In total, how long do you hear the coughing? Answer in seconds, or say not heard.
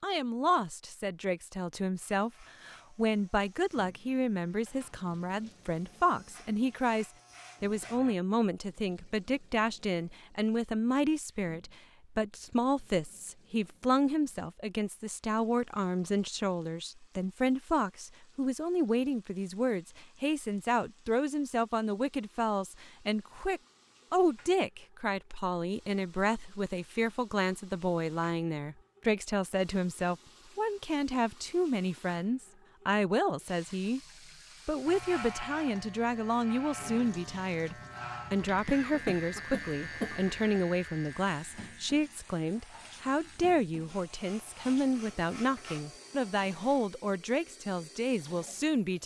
2 s.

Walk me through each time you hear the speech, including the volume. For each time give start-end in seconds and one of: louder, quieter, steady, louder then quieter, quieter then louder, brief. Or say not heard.
0.0-34.0 steady
34.6-49.0 steady.